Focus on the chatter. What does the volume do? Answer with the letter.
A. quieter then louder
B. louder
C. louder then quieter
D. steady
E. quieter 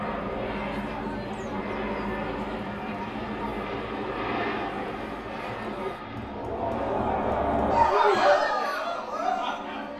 B.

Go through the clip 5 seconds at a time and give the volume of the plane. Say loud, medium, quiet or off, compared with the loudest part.
loud, medium.